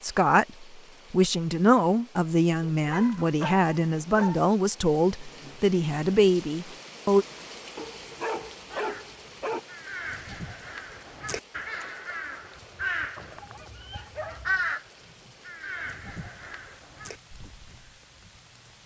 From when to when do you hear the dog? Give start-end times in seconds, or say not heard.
2.6-4.5, 7.8-9.6, 13.2-14.8.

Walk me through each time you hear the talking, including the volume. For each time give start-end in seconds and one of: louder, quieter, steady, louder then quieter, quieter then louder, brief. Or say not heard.
0.0-7.2 steady.